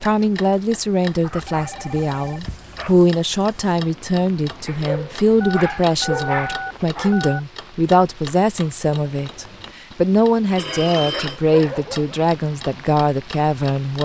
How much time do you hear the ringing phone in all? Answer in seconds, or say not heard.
4 s.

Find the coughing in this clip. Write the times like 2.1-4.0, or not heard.
not heard.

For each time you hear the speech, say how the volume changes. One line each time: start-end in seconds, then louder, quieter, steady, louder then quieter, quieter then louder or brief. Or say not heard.
0.0-13.9 steady.